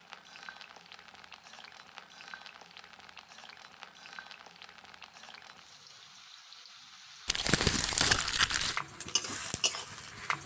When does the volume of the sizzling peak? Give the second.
9 s.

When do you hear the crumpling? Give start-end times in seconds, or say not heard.
7.2-8.8.